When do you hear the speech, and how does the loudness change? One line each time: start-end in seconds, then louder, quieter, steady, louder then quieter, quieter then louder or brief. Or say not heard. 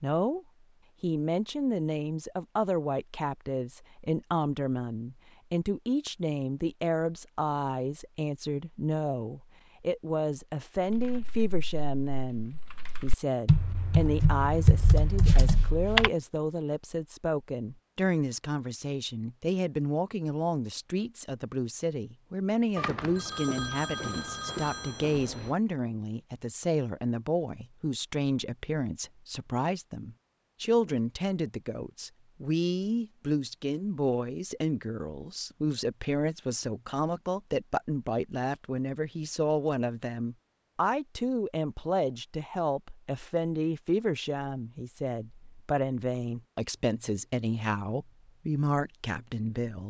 0.0-49.8 steady.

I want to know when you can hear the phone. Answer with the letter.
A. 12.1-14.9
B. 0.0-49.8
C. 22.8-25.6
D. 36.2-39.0
C.